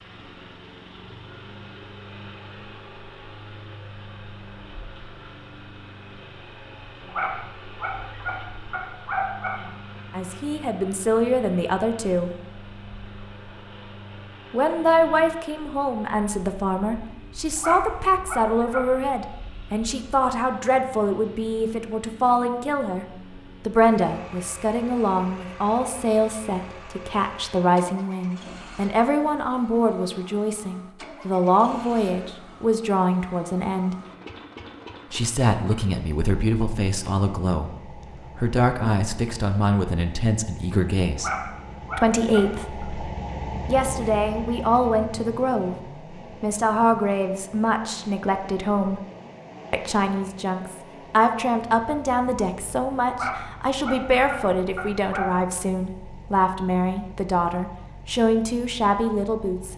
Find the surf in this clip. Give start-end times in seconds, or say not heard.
not heard.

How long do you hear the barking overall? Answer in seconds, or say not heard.
8 s.